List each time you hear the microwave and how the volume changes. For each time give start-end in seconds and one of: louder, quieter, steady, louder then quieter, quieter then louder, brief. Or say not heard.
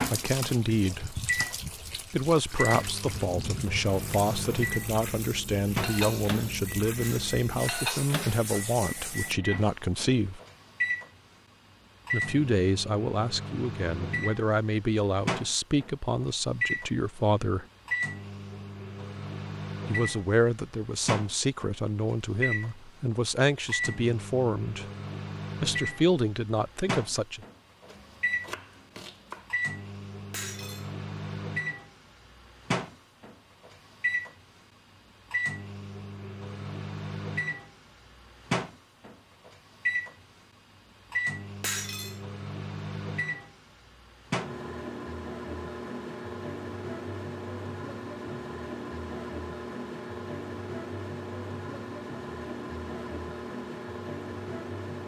0.0-55.0 steady.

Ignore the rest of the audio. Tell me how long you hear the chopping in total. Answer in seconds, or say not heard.
2 s.